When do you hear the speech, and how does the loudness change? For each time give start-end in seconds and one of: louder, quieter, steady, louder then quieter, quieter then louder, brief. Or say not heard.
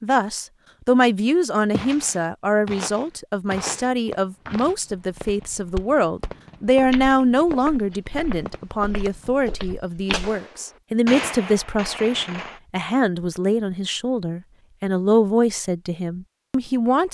0.0-17.0 steady.